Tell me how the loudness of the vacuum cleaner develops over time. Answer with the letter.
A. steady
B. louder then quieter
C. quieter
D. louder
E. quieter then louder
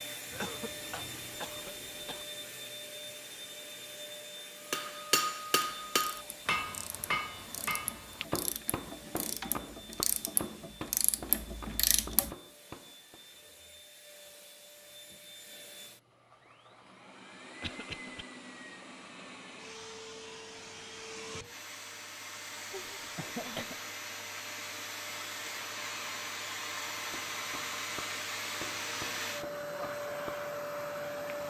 E.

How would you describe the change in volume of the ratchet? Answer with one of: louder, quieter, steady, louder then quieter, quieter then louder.
louder.